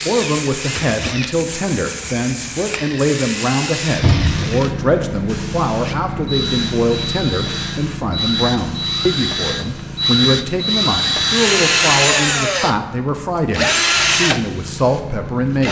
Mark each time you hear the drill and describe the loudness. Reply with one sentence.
The drill can be heard from 0.0 to 15.6 s, getting louder.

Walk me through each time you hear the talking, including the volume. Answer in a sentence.
You can hear the talking from 0.0 to 15.6 s, at a steady volume.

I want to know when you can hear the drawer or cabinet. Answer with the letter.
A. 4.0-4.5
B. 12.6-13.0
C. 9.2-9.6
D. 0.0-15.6
A.